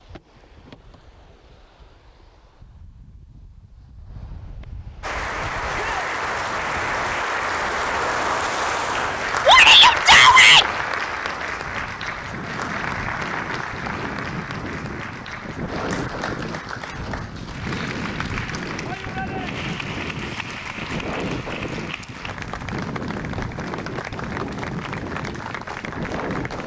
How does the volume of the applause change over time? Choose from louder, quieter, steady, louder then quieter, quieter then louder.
quieter.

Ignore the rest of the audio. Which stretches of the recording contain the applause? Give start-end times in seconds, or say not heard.
5.0-26.6.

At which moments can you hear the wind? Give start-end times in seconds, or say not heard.
0.0-26.6.